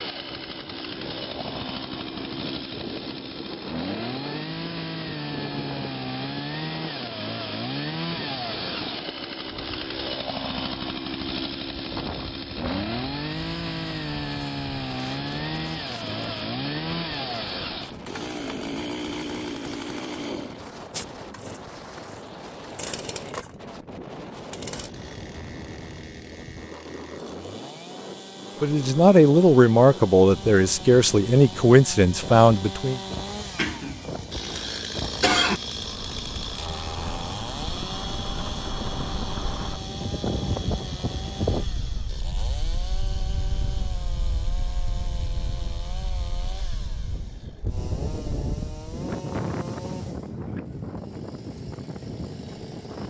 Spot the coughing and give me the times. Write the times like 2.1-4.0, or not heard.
33.5-35.6.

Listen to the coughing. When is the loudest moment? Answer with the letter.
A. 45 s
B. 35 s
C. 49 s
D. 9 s
B.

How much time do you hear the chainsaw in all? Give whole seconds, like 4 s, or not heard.
53 s.